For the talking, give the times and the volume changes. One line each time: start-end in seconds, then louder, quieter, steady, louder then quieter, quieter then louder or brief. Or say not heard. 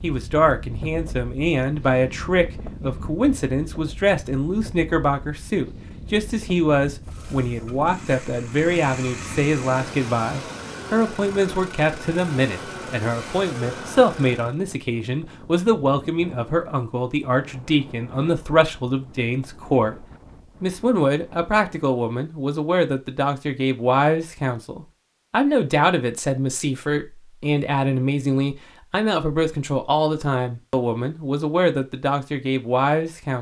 0.0-33.3 steady.